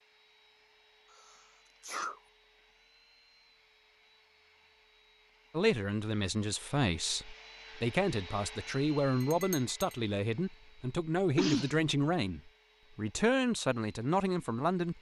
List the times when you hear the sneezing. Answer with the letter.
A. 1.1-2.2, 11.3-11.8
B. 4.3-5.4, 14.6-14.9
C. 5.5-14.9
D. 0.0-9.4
A.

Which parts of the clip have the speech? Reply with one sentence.
You can hear the speech from 5.5 to 14.9 s.